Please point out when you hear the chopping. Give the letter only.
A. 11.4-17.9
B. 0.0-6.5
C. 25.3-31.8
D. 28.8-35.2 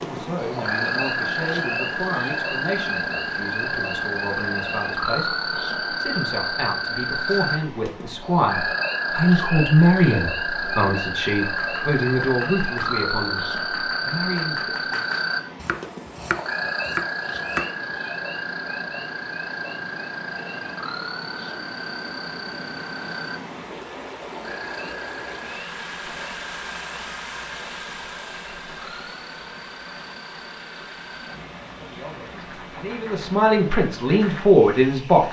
A.